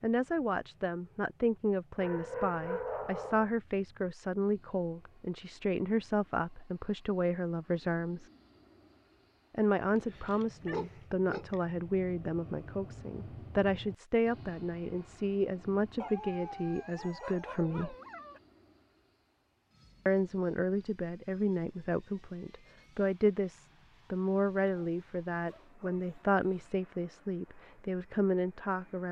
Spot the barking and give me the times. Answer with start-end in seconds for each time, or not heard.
1.9-3.5, 9.9-11.6, 16.0-18.4, 24.6-26.7.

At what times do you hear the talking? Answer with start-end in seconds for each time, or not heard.
0.0-8.3, 9.5-17.9, 20.1-29.0.